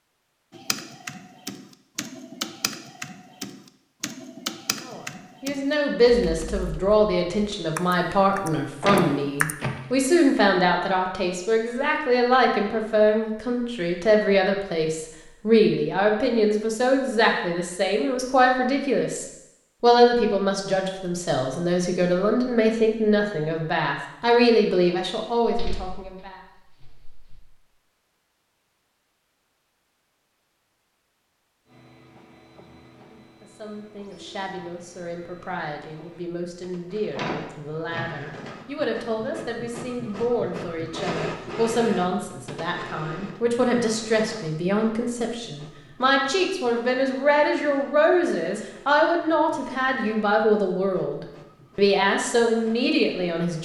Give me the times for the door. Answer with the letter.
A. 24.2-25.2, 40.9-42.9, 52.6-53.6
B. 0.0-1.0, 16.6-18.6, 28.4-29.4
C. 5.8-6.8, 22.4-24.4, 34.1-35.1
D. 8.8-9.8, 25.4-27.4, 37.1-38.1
D.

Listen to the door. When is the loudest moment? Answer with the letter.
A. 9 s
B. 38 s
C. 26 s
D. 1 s
A.